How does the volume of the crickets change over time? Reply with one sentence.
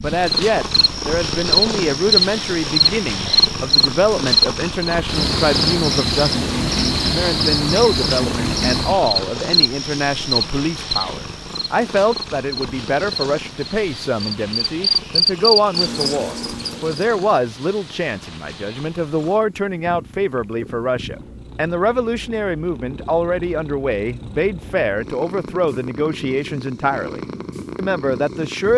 The loudness of the crickets goes down, then up.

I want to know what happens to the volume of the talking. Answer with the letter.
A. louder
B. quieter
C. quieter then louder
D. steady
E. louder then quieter
D.